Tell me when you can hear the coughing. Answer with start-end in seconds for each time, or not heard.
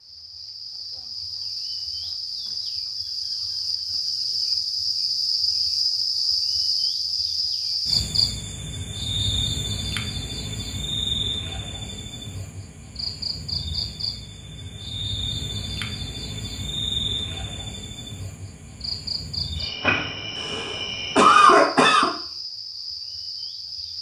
20.4-22.1.